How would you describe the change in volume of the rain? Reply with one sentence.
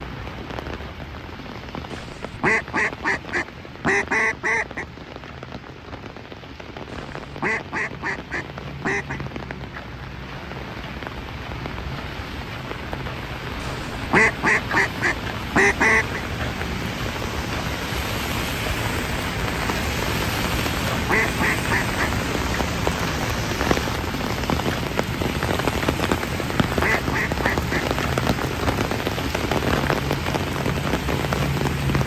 The volume of the rain goes up.